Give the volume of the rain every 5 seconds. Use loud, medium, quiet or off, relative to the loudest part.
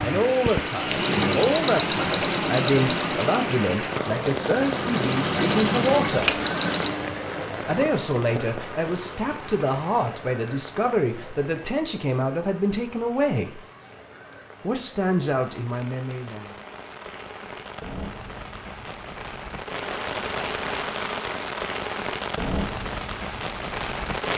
loud, loud, quiet, medium, loud.